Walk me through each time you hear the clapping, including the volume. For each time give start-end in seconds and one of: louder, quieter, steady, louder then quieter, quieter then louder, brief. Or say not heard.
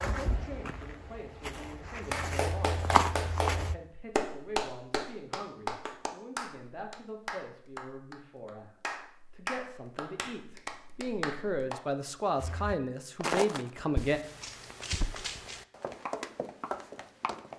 1.9-11.8 quieter.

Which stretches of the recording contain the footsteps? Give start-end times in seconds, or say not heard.
0.0-3.8, 12.3-17.5.